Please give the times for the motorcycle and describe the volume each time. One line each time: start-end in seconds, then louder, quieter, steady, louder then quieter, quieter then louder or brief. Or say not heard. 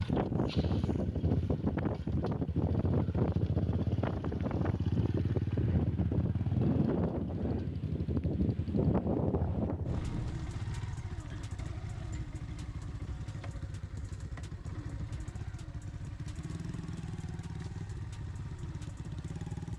0.0-19.7 quieter.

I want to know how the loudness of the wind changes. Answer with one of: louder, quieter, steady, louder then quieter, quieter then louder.
steady.